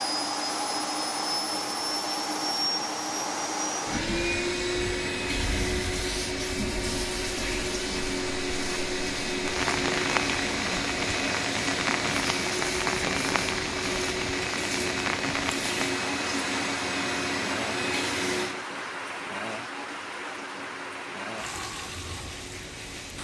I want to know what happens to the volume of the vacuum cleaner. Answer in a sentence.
The loudness of the vacuum cleaner goes down.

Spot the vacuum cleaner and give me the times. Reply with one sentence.
You can hear the vacuum cleaner from 0.0 to 23.1 s.